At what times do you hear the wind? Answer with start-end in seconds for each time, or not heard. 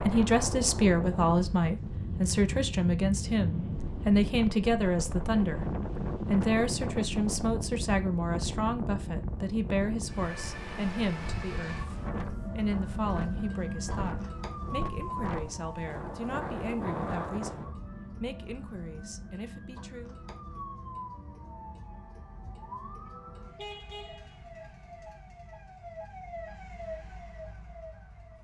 0.0-17.8.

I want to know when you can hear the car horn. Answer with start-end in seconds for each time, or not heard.
23.6-24.4.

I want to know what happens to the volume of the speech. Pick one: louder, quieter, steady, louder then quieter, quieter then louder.
quieter.